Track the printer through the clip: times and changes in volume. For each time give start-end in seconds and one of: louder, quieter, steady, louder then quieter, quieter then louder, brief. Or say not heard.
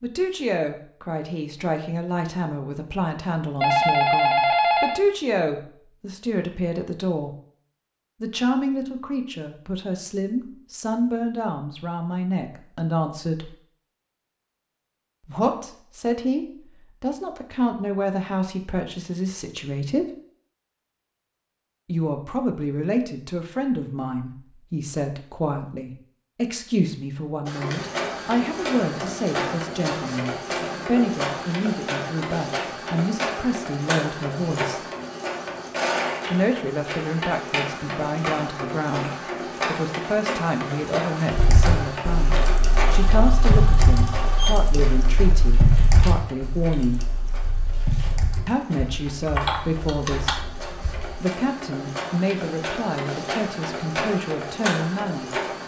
27.4-55.6 quieter then louder.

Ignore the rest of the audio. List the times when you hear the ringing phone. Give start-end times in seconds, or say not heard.
3.6-5.0, 42.9-44.8.